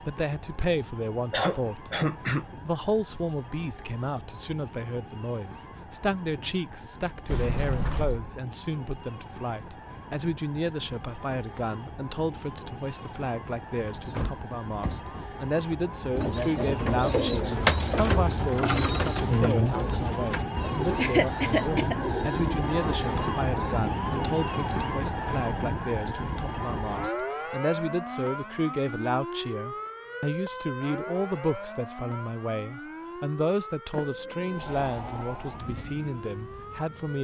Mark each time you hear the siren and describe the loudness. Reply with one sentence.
The siren can be heard from 0.0 to 37.1 s, getting louder then quieter.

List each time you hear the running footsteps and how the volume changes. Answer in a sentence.
You can't hear the running footsteps here.